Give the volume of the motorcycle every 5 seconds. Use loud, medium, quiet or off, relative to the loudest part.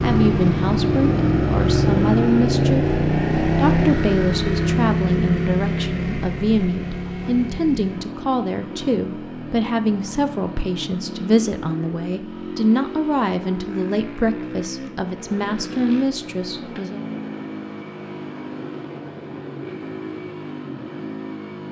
loud, medium, quiet, quiet, quiet.